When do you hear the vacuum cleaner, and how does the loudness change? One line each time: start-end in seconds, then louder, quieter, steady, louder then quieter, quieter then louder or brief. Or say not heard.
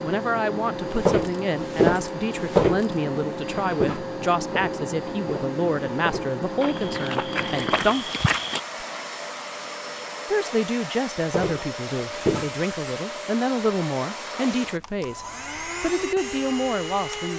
0.0-17.3 steady.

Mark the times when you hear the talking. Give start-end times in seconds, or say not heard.
0.0-8.1, 10.3-17.3.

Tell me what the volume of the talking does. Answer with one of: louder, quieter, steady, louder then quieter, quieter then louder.
steady.